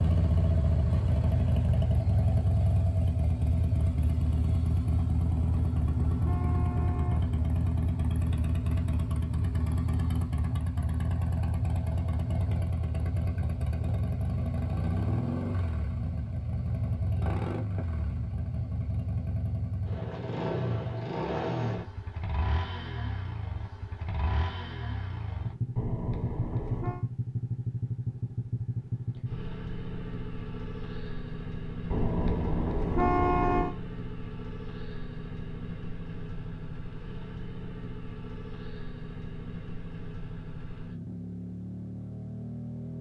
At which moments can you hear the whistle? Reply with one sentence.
The whistle can't be heard in this clip.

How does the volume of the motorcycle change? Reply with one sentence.
The loudness of the motorcycle goes down.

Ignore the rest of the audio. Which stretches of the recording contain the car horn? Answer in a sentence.
You can hear the car horn from 5.2 to 7.2 s, from 25.8 to 27.1 s and from 31.9 to 33.8 s.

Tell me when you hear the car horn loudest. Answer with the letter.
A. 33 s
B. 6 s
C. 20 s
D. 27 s
A.